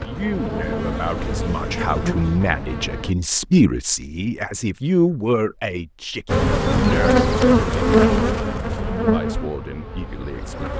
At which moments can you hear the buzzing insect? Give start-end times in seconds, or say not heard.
0.0-3.1, 6.2-10.7.